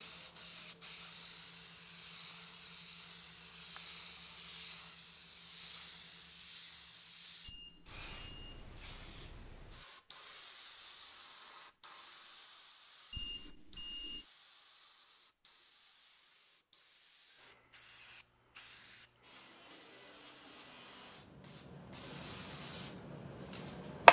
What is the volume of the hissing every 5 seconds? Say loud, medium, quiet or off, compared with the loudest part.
quiet, quiet, quiet, quiet, loud.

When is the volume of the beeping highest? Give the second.
14 s.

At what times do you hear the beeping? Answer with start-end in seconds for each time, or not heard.
7.4-8.7, 13.1-14.2.